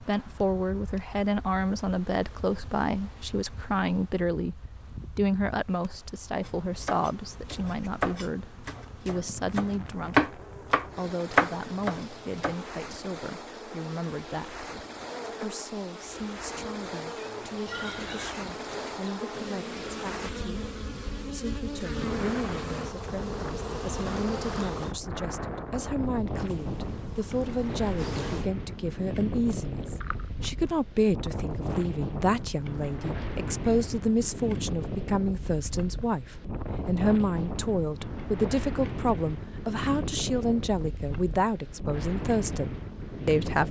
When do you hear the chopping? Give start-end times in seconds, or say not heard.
6.8-12.6.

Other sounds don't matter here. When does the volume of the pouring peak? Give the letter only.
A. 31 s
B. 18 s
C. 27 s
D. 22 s
B.